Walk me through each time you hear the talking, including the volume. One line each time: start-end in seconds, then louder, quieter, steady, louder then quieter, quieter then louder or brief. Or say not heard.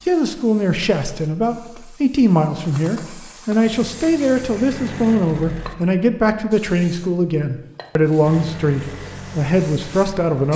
0.1-10.5 steady.